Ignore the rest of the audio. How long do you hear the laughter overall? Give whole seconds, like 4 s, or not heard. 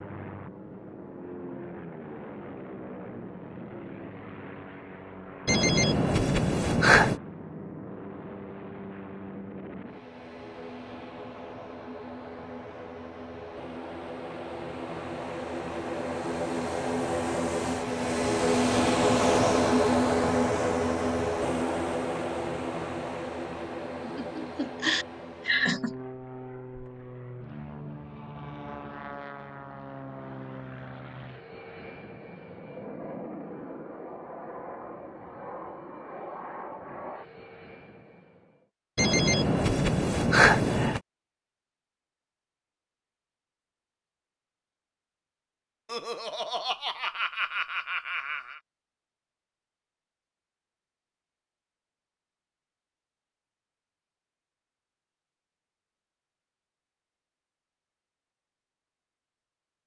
5 s.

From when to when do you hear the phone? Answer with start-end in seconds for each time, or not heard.
5.5-7.2, 39.0-41.0.